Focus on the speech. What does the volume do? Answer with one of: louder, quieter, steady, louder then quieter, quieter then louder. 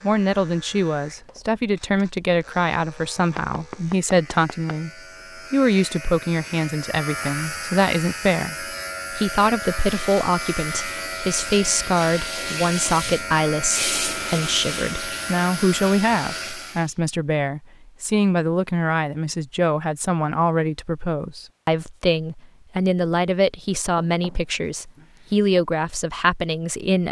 steady.